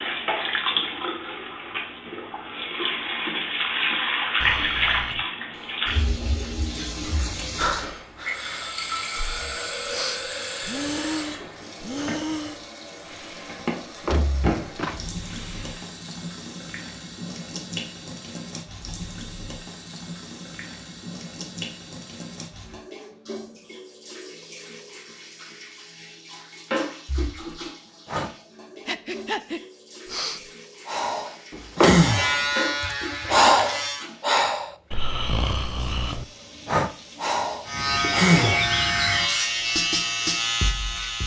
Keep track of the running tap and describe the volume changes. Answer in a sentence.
The loudness of the running tap goes down.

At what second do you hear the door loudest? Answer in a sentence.
The volume of the door peaks at 32 seconds.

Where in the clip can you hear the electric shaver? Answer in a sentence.
You can hear the electric shaver from 31.9 to 34.0 s and from 37.6 to 41.2 s.